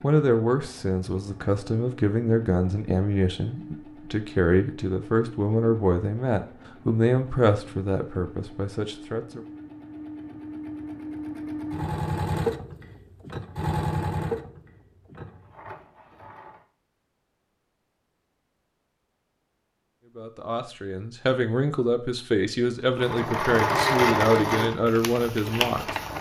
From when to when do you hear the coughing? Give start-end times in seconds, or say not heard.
not heard.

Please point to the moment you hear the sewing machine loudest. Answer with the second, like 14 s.
24 s.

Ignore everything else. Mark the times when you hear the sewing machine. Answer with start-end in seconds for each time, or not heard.
0.0-16.6, 22.9-26.1.